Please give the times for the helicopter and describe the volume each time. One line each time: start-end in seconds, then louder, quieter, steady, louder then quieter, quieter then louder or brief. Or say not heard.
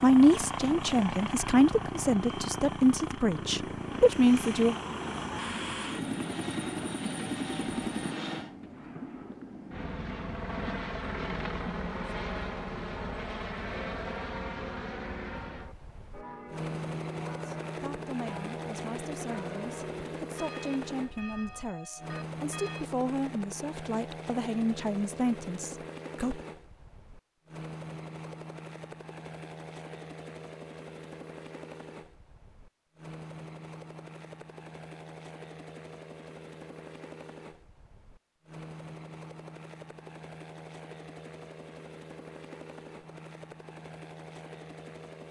0.0-45.2 quieter.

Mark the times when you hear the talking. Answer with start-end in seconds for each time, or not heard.
0.0-4.8, 17.4-26.4.